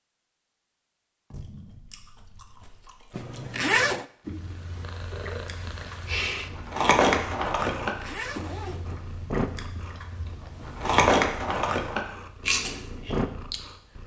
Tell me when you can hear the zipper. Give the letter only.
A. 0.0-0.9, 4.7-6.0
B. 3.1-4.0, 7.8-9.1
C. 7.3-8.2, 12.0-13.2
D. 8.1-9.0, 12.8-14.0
B.